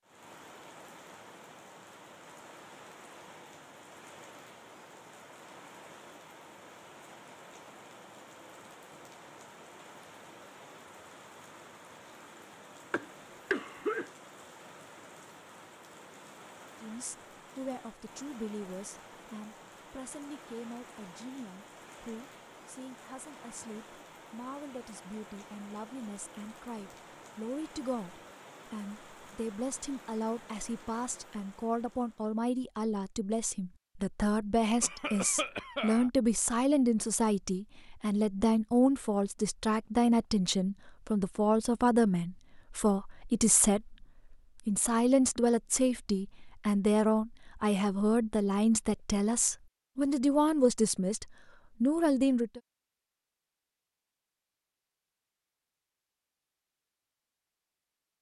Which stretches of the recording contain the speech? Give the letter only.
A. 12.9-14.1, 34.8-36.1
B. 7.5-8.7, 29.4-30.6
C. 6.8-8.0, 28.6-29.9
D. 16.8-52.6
D.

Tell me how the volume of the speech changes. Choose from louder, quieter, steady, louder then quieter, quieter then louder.
louder.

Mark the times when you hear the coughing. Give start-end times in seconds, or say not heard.
12.9-14.1, 34.8-36.1.